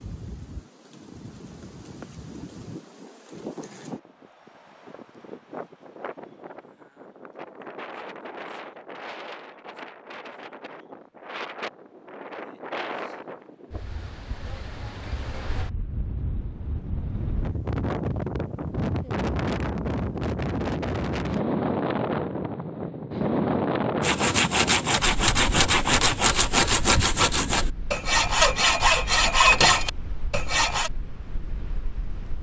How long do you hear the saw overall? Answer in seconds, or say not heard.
7 s.